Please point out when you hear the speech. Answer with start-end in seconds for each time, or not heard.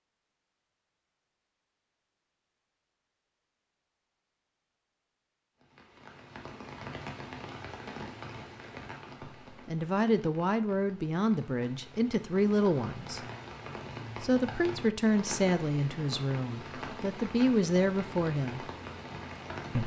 9.7-13.2, 14.2-18.6.